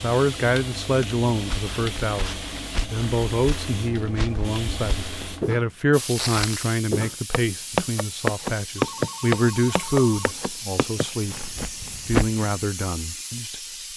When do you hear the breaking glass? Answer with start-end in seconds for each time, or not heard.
not heard.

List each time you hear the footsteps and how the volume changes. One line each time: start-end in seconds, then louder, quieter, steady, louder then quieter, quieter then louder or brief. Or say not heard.
1.4-12.4 louder then quieter.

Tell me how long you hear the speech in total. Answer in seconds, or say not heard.
14 s.